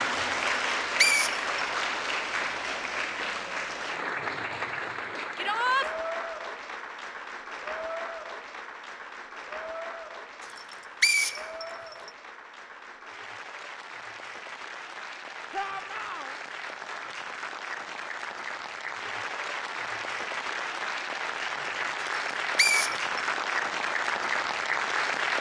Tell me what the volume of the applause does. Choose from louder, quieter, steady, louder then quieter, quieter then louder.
quieter then louder.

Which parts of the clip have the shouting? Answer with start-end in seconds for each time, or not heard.
5.3-5.9, 15.5-16.4.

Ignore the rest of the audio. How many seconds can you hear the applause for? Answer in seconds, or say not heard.
25 s.